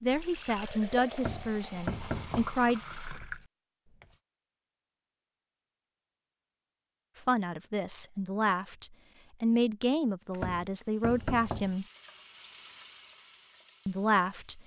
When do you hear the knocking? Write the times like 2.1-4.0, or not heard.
1.1-2.5, 10.3-11.8.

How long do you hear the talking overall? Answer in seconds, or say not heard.
8 s.